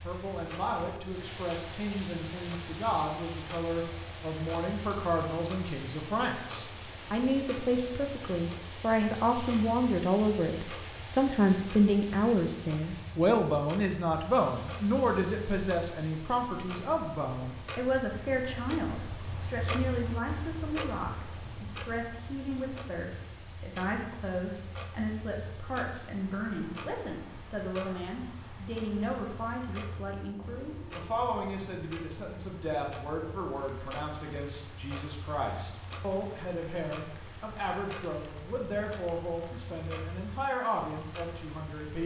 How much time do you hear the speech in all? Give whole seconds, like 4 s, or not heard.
42 s.